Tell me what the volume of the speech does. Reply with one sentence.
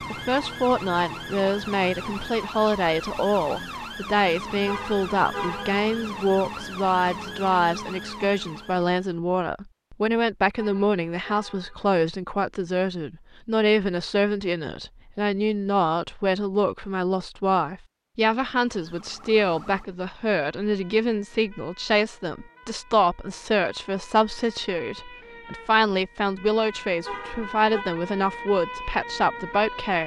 The loudness of the speech stays about the same.